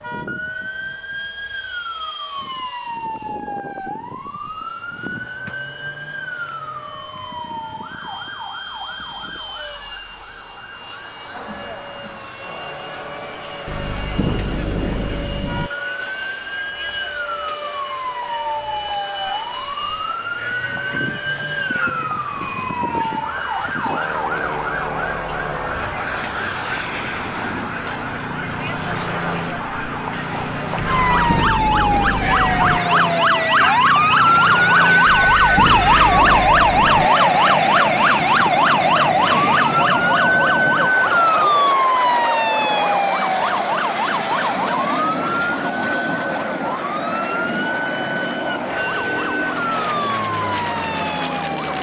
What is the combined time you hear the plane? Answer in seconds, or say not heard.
52 s.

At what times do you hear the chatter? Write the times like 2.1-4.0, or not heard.
11.3-51.5.